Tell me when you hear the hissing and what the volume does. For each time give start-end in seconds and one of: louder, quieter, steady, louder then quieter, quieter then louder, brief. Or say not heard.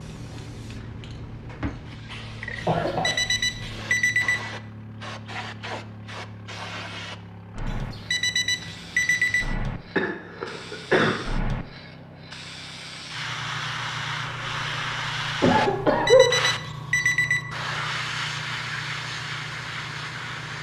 0.0-20.5 louder.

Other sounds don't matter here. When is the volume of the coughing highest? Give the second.
16 s.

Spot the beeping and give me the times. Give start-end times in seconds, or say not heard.
2.6-4.4, 7.7-9.4, 15.6-17.4.